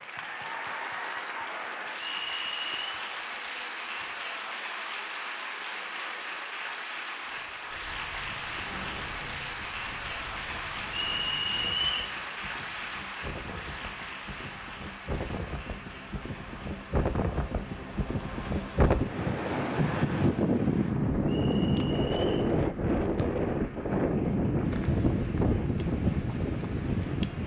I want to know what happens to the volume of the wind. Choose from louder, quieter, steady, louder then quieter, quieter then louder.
louder.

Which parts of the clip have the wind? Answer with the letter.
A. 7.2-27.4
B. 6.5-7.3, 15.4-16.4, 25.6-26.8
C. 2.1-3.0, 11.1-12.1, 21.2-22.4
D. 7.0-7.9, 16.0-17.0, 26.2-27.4
A.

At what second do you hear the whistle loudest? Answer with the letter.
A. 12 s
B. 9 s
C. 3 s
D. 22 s
A.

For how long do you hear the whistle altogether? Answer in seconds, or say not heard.
3 s.